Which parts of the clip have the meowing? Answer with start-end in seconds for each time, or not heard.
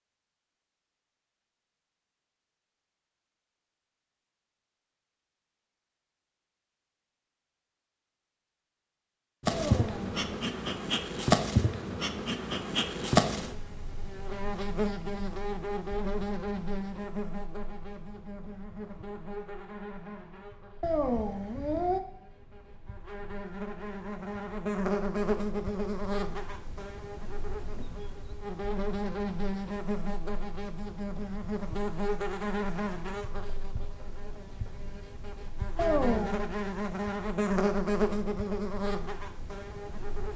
9.5-10.2, 20.8-22.0, 35.8-36.5.